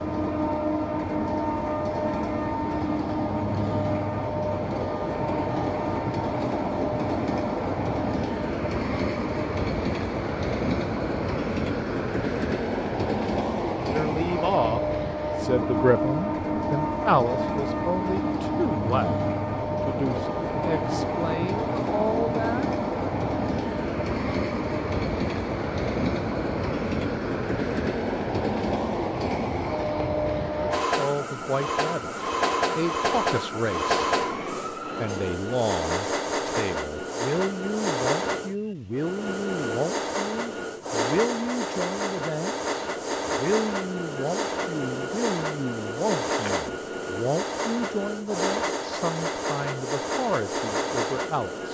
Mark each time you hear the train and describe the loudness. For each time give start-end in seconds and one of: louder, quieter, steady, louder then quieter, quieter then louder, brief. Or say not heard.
0.0-51.7 steady.